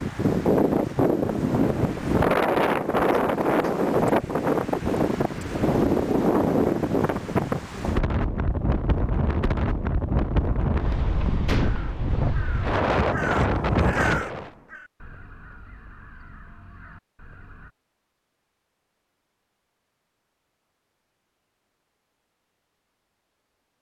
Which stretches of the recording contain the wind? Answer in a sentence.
You can hear the wind from 0.0 to 14.5 s.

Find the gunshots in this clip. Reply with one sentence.
The gunshots can be heard from 11.4 to 11.9 s.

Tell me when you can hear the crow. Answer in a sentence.
You can hear the crow from 11.6 to 17.7 s.